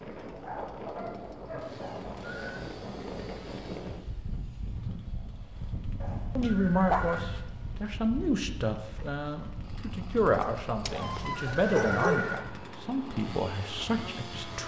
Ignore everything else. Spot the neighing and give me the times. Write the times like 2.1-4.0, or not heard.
1.8-2.6, 6.0-7.2, 10.9-12.4.